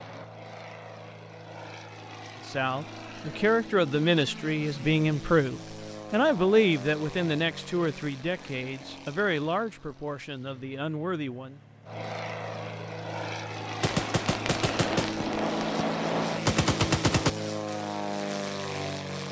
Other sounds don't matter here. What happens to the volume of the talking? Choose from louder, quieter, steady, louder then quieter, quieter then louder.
quieter.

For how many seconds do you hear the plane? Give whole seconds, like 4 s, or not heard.
19 s.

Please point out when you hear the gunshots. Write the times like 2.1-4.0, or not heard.
13.8-17.3.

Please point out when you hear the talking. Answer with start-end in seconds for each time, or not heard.
2.4-11.6.